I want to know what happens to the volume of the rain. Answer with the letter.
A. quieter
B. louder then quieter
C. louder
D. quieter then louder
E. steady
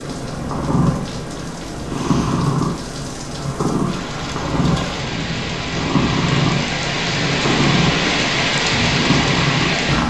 C.